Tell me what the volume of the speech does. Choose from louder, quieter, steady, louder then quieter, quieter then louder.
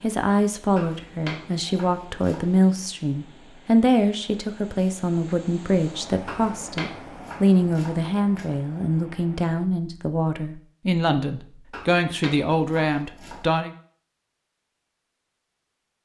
steady.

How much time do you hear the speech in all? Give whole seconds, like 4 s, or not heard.
14 s.